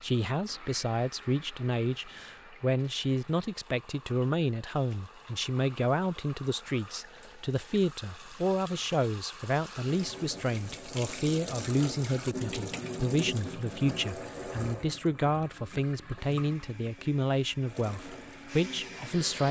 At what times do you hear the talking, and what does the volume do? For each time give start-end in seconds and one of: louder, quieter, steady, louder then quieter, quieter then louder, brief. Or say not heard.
0.0-19.4 steady.